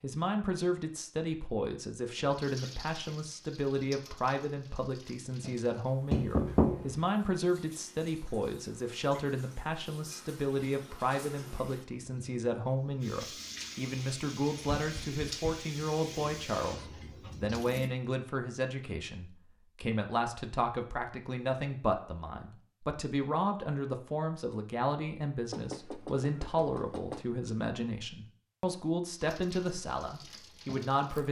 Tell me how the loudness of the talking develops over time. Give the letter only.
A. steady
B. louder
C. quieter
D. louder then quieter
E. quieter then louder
A.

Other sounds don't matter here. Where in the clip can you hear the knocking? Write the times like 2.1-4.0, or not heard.
6.1-7.0, 14.7-15.7, 25.5-27.3.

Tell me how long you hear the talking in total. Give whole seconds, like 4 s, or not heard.
31 s.